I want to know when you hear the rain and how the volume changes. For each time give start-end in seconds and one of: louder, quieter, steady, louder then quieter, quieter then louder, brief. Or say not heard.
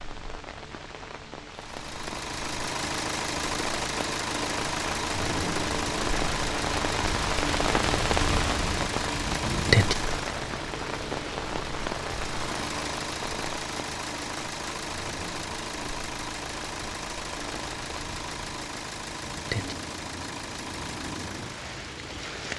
0.0-22.5 louder then quieter.